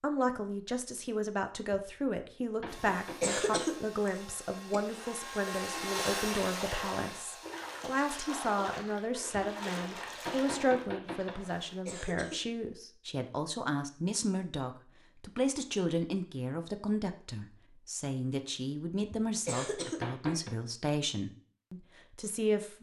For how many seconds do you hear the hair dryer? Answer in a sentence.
You can hear the hair dryer for 6 seconds altogether.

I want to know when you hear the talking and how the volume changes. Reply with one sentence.
The talking can be heard from 0.0 to 22.7 s, at a steady volume.